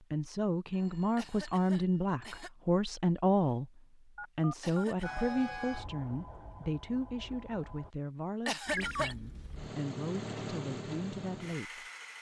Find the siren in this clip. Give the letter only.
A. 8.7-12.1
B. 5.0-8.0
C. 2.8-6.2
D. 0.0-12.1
B.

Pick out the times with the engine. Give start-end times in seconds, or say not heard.
8.7-12.1.